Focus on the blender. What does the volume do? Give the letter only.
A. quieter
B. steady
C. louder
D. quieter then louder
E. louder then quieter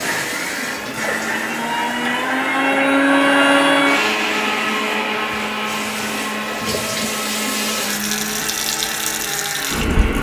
E.